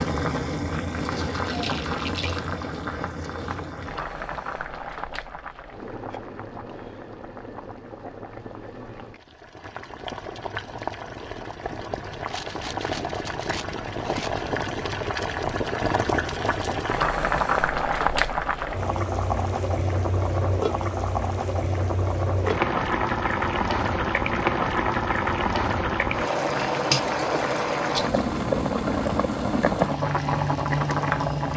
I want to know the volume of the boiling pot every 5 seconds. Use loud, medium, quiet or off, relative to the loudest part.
medium, quiet, medium, loud, loud, loud, loud.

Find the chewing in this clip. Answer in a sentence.
The chewing can't be heard in this clip.